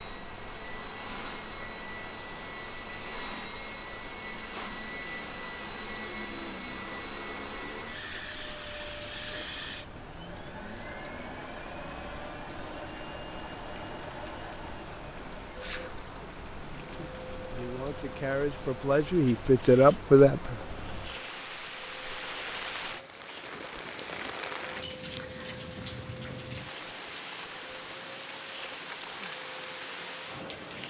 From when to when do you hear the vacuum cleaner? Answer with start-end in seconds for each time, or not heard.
0.0-30.8.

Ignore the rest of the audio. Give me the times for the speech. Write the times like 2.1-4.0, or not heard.
16.7-20.6.